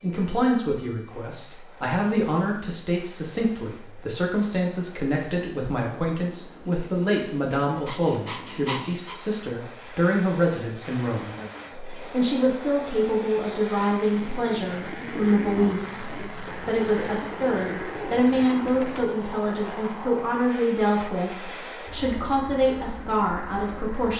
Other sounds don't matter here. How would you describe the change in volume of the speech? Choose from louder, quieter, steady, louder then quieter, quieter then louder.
steady.